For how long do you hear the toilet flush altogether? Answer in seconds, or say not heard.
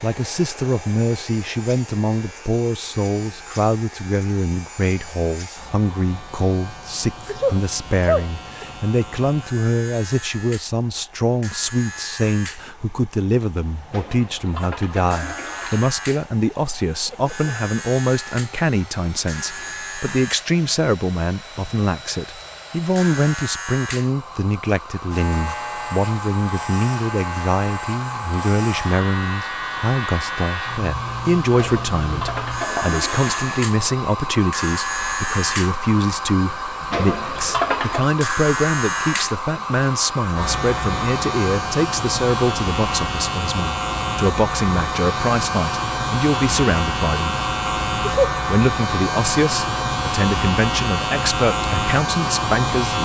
5 s.